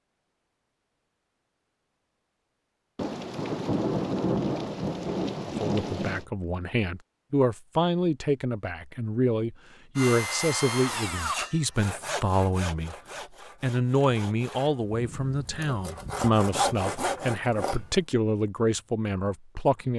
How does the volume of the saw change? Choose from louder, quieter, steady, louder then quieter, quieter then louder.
quieter then louder.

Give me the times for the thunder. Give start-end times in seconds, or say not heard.
3.0-6.2.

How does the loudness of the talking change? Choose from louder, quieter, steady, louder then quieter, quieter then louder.
steady.